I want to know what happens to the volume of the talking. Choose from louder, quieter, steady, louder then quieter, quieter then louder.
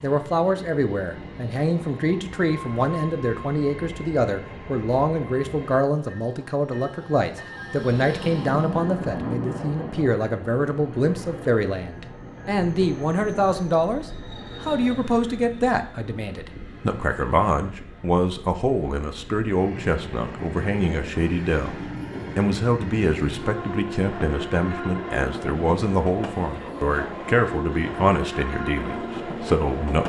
steady.